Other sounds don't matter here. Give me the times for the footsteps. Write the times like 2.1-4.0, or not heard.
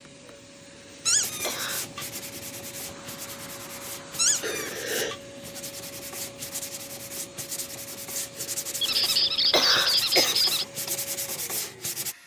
not heard.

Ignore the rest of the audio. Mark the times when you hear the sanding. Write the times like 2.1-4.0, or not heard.
1.1-12.2.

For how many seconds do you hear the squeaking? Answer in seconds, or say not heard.
4 s.